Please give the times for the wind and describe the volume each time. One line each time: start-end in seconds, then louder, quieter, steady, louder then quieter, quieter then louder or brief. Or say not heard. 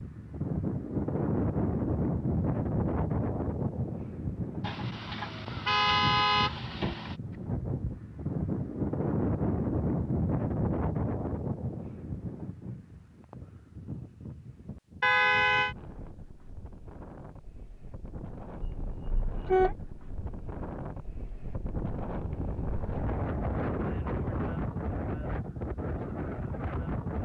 0.0-27.2 quieter then louder.